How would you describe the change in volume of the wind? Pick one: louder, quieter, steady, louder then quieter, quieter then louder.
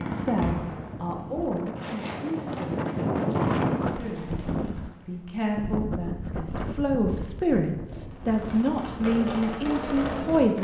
louder then quieter.